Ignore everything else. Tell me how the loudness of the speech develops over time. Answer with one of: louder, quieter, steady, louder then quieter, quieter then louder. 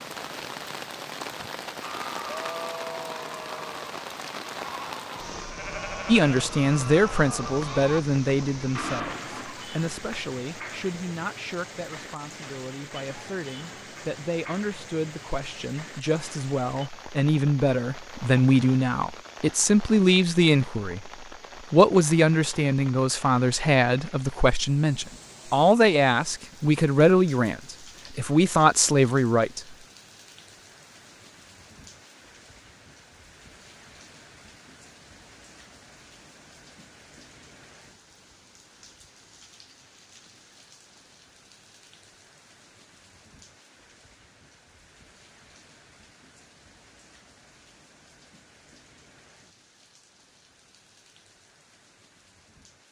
quieter then louder.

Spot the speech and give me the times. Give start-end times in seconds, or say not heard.
6.0-29.8.